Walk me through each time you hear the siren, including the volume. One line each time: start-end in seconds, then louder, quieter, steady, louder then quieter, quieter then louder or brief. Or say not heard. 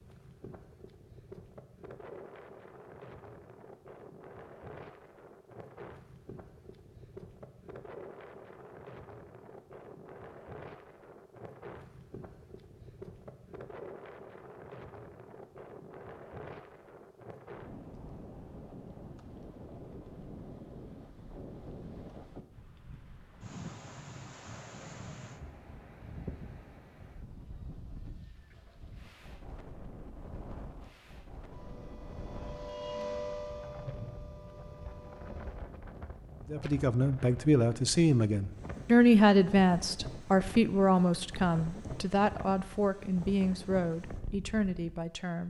31.4-35.6 louder then quieter.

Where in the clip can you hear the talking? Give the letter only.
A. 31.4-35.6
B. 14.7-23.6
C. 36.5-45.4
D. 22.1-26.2
C.